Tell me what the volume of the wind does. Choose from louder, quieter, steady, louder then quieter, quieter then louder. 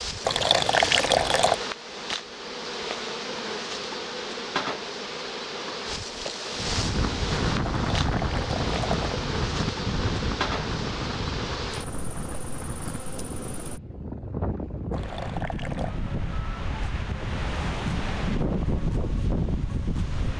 quieter then louder.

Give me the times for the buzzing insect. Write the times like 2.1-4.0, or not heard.
0.0-13.8.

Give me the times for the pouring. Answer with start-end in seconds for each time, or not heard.
0.2-1.6, 7.8-9.2, 14.9-15.9.